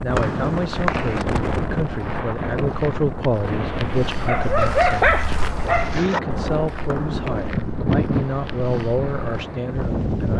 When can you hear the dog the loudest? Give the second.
5 s.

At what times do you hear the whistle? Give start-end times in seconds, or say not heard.
0.1-1.2, 6.8-7.2.